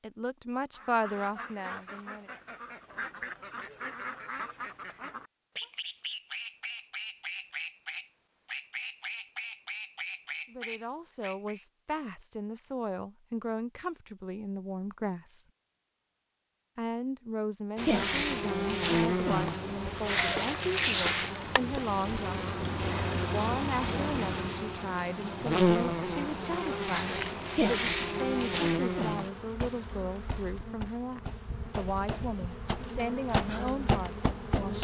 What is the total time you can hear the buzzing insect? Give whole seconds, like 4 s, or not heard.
17 s.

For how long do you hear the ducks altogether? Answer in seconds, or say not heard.
11 s.